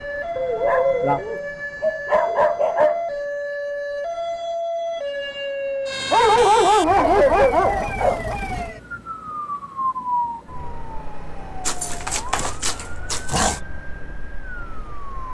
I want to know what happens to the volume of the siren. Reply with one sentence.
The loudness of the siren goes down.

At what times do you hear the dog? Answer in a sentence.
The dog can be heard from 0.3 to 3.0 s, from 6.1 to 8.3 s and from 11.7 to 13.6 s.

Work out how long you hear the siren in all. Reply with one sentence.
You can hear the siren for 15 seconds altogether.